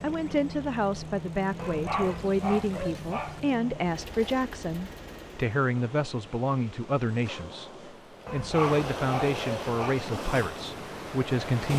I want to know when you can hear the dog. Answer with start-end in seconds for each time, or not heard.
1.6-3.4, 8.2-10.0.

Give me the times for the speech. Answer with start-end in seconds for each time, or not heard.
0.0-7.7, 8.3-11.7.